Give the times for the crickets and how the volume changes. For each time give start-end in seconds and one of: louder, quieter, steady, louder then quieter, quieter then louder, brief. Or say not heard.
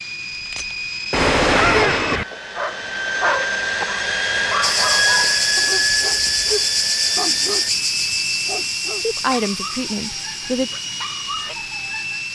4.6-12.3 quieter.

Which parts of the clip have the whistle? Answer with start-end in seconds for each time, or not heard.
not heard.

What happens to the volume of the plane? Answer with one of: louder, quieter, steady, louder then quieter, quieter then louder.
louder then quieter.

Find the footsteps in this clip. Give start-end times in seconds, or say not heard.
not heard.